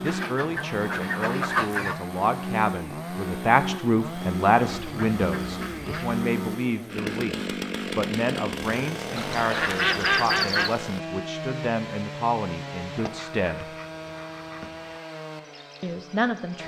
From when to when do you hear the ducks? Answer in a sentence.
You can hear the ducks from 0.1 to 1.9 s, from 4.7 to 6.2 s, from 9.2 to 10.8 s and from 12.9 to 15.0 s.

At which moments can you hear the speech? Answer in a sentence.
The speech can be heard from 0.0 to 13.7 s and from 15.8 to 16.6 s.